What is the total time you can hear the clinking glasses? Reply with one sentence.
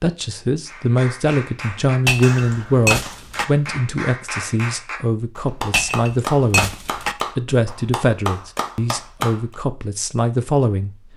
The clinking glasses can be heard for 3 seconds in total.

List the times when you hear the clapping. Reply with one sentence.
You can hear the clapping from 0.7 to 9.6 s.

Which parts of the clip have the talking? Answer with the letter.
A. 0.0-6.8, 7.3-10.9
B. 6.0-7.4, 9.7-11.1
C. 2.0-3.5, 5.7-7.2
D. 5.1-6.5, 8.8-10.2
A.